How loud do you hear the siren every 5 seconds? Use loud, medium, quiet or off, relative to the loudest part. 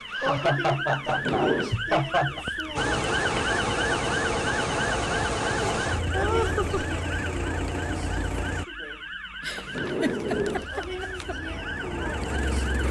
loud, medium, medium.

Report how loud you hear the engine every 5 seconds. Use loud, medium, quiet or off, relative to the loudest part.
loud, loud, medium.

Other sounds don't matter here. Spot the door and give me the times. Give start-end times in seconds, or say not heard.
1.1-1.8, 9.6-10.7.